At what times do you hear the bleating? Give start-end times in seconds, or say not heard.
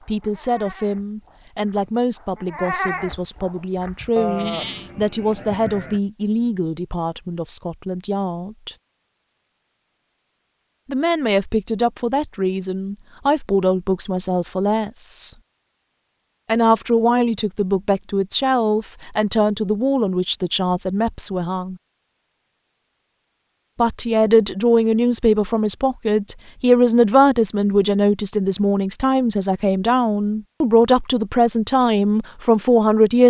0.0-6.0.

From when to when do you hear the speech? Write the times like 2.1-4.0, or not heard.
0.0-8.8, 10.8-15.3, 16.4-21.8, 23.8-33.2.